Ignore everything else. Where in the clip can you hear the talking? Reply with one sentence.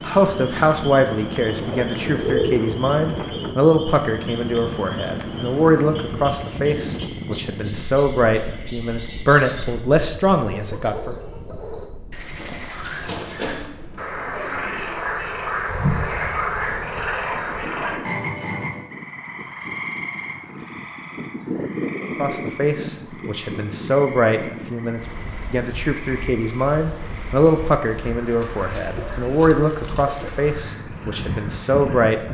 The talking can be heard from 0.0 to 11.2 s and from 22.1 to 32.2 s.